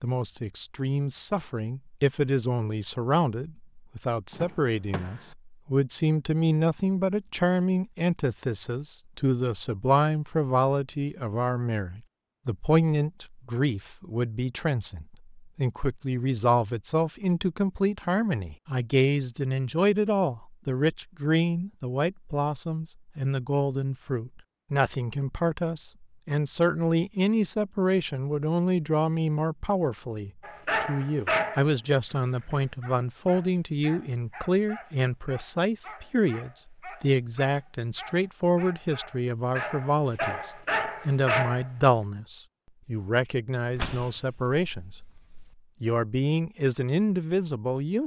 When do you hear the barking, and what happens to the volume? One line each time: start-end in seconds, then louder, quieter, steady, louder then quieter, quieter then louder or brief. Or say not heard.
30.4-31.7 brief
32.5-41.7 louder.